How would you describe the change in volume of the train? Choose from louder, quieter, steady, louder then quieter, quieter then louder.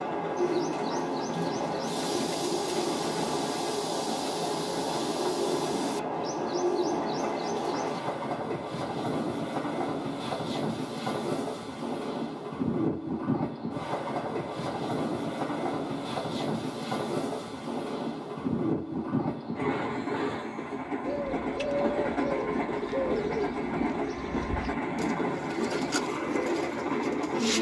steady.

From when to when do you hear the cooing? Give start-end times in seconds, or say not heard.
0.3-8.0, 21.1-27.5.